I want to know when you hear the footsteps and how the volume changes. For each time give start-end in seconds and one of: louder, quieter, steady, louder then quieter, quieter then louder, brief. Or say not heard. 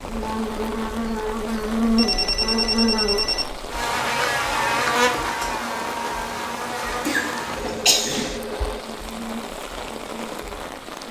not heard.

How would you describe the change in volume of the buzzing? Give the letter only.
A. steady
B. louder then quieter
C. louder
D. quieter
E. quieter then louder
D.